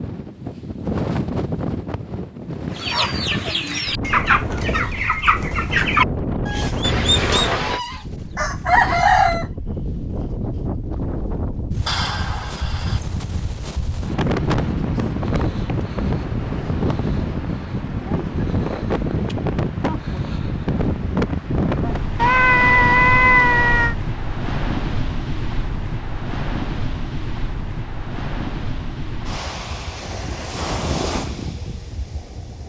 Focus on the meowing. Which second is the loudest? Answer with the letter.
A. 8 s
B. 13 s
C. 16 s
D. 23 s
D.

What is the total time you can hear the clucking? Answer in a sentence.
The clucking can be heard for 7 seconds in total.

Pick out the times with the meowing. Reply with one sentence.
You can hear the meowing from 6.8 to 7.8 s, from 11.8 to 13.0 s and from 22.1 to 23.9 s.